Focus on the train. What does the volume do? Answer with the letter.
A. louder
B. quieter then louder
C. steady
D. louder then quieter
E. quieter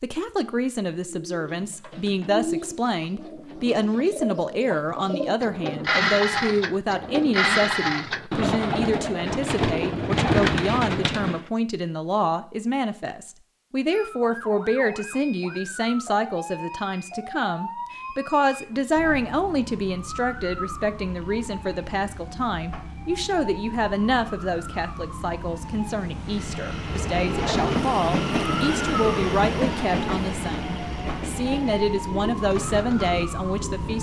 D.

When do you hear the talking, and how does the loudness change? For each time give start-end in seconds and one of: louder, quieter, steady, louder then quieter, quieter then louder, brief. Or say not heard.
0.0-33.9 steady.